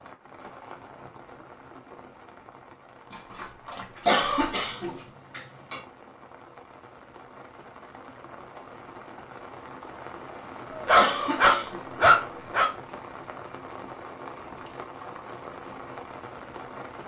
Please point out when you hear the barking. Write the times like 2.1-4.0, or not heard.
3.1-5.1, 10.7-12.7.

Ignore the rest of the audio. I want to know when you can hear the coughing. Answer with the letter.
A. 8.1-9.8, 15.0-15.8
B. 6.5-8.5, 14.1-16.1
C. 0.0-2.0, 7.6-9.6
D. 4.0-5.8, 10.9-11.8
D.